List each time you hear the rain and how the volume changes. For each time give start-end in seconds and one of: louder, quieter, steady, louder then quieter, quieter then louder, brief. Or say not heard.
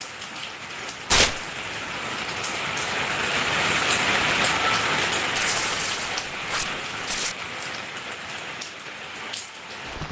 0.0-10.0 louder then quieter.